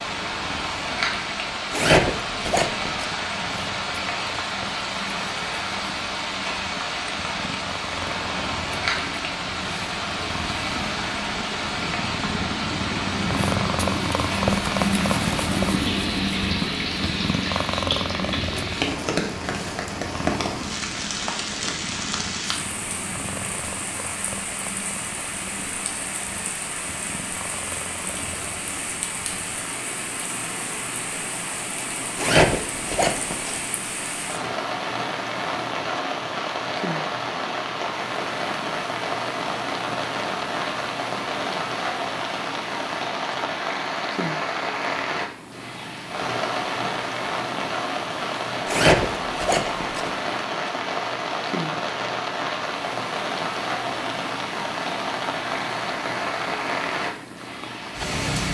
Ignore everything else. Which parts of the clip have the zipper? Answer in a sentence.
The zipper can be heard from 1.7 to 3.1 s, from 32.1 to 33.6 s and from 48.6 to 50.1 s.